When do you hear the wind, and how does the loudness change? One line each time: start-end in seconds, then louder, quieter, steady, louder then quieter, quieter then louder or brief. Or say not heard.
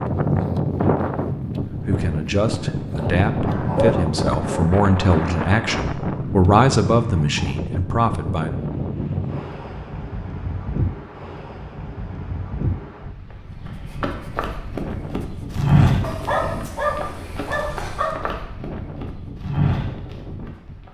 0.0-20.8 quieter.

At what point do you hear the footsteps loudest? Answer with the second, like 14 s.
16 s.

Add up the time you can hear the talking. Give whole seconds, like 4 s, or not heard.
7 s.